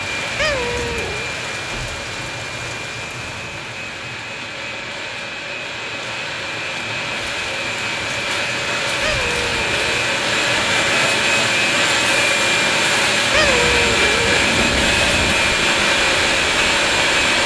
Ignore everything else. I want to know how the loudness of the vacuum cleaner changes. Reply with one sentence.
The loudness of the vacuum cleaner goes up.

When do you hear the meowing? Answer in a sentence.
You can hear the meowing from 0.3 to 1.3 s, from 9.0 to 9.9 s and from 13.3 to 15.3 s.